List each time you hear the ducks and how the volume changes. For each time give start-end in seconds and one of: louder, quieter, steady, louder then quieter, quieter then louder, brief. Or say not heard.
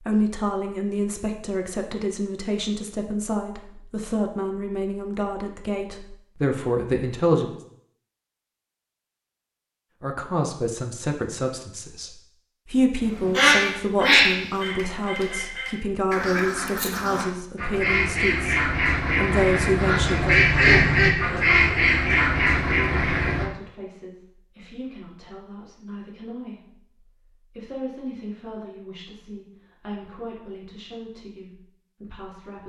13.2-23.5 quieter then louder.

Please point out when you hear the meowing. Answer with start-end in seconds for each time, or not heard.
not heard.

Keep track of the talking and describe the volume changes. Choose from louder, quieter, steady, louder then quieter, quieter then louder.
quieter.